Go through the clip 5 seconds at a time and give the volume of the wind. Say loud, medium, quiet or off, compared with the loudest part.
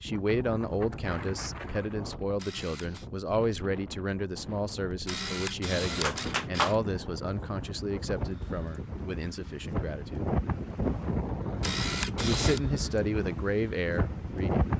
medium, medium, loud.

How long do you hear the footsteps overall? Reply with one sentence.
The footsteps can't be heard in this clip.